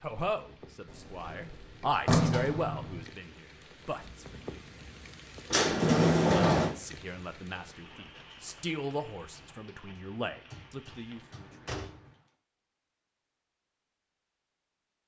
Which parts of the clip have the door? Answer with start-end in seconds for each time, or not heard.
0.9-3.0, 5.5-6.8, 10.5-12.2.